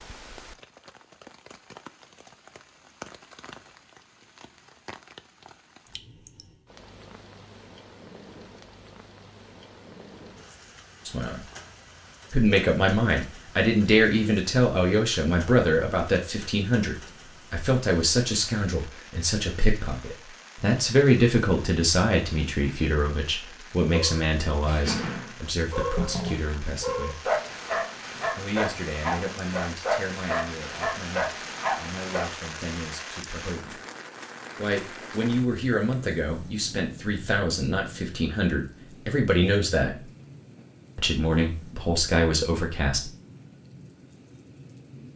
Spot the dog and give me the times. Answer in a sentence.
The dog can be heard from 23.9 to 32.4 s.